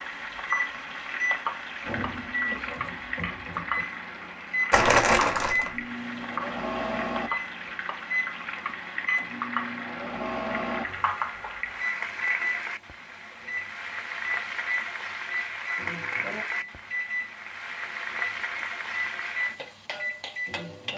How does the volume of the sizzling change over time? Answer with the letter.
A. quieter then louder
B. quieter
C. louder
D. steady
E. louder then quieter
D.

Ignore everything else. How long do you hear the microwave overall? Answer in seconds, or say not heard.
21 s.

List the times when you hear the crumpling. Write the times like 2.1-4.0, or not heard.
4.7-5.8.